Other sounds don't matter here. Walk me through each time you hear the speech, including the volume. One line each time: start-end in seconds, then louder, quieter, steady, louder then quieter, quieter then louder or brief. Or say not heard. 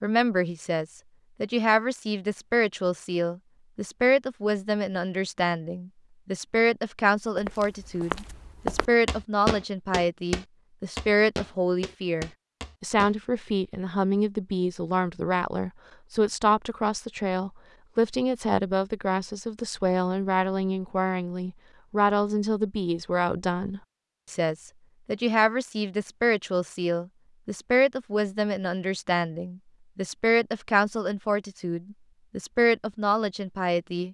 0.0-34.0 steady.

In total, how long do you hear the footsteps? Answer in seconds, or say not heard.
6 s.